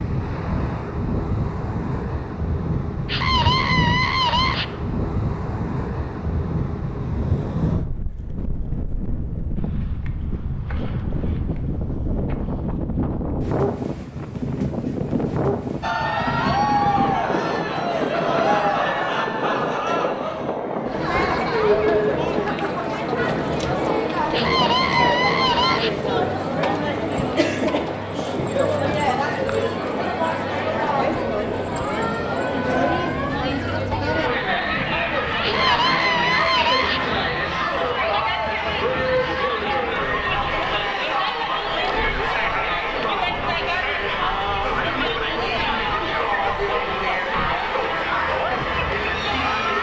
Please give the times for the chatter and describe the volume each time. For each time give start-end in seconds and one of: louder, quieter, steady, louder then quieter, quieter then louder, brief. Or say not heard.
15.8-49.7 steady.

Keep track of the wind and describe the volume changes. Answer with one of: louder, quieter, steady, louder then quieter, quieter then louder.
quieter.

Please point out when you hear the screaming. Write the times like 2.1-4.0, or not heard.
3.0-4.7, 24.3-25.9, 35.4-37.0.